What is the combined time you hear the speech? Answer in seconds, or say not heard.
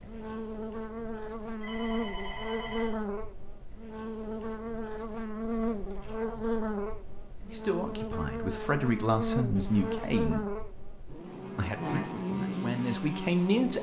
5 s.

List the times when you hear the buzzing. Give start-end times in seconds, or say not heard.
0.0-13.7.